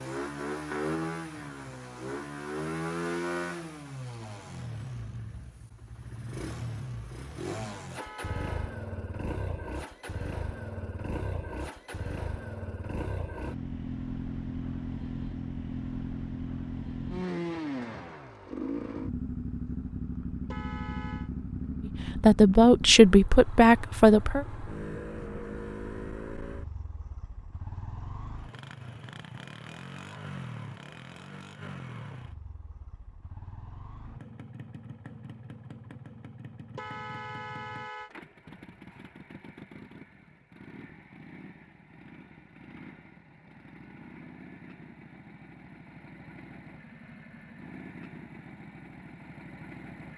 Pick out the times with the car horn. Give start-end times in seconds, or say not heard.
8.0-8.8, 20.4-21.3, 36.8-38.1.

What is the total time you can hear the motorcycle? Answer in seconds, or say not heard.
50 s.